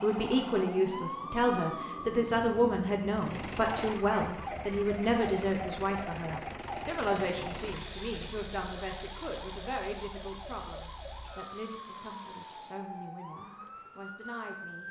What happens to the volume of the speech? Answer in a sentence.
The volume of the speech goes down.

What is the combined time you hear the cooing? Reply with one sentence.
The cooing can't be heard in this clip.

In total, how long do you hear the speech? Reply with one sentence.
You can hear the speech for 15 seconds altogether.